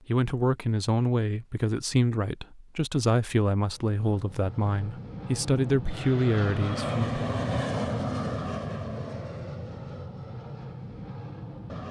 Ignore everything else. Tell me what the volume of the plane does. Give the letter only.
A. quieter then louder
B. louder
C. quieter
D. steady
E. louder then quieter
E.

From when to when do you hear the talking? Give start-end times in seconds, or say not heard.
0.1-7.3.